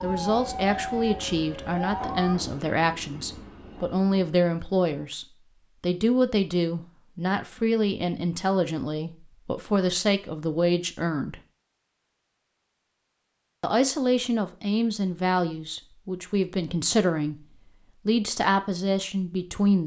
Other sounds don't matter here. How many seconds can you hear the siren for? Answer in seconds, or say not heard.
2 s.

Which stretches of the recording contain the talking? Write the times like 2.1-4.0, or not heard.
0.0-11.4, 13.6-17.4, 18.1-19.8.